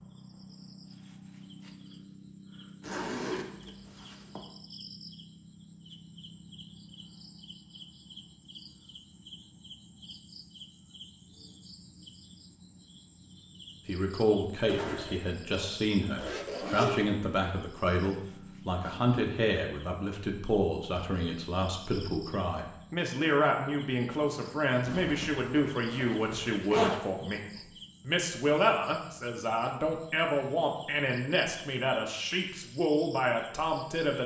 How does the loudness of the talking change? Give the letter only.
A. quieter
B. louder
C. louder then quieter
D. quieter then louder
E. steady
E.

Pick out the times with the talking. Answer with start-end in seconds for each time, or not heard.
13.8-34.2.